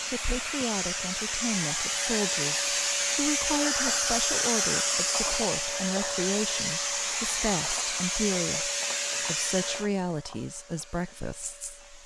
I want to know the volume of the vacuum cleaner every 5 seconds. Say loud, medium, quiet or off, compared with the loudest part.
loud, loud, quiet.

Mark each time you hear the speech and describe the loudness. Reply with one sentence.
You can hear the speech from 0.1 to 11.8 s, at a steady volume.